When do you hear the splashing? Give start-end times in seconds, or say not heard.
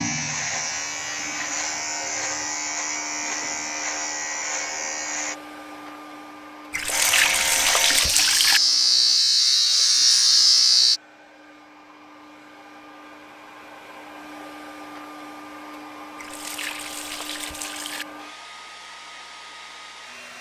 6.7-8.6, 16.1-18.1.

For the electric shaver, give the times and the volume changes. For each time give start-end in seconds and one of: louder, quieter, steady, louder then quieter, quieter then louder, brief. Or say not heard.
0.0-5.3 steady
6.9-11.0 louder.